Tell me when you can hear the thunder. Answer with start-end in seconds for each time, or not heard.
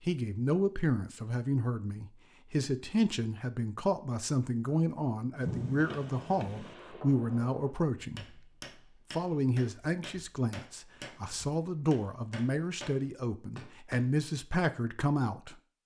5.4-6.8.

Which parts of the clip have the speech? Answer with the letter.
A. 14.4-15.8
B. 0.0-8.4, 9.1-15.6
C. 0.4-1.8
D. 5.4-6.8
B.